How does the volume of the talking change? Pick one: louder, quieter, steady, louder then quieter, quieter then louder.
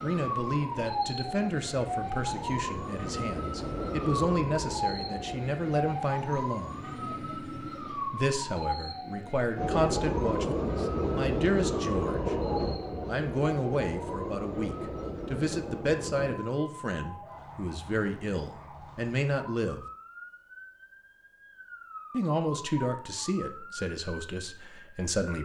steady.